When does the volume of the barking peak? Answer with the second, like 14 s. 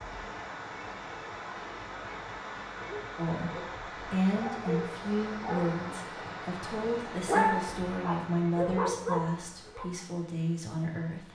7 s.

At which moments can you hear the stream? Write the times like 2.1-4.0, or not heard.
0.0-11.3.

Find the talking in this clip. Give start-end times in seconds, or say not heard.
3.1-11.3.